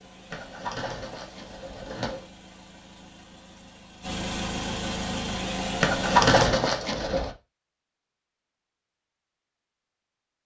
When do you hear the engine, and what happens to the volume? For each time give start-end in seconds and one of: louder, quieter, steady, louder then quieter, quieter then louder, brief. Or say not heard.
0.0-6.5 louder.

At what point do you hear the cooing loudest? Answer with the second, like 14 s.
6 s.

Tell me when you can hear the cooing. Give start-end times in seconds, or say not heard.
0.3-2.2, 5.8-7.3.